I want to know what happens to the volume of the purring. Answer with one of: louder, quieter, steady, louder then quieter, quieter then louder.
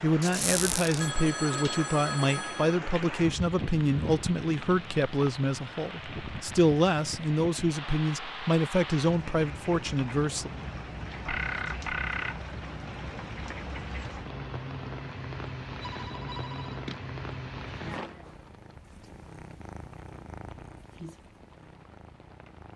louder then quieter.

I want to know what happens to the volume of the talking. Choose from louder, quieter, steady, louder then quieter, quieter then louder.
steady.